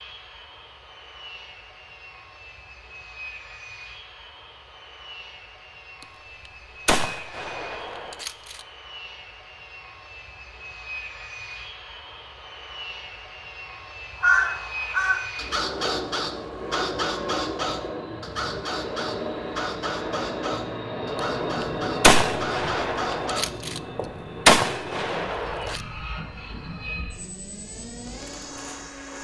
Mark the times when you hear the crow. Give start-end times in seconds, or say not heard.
14.2-24.1.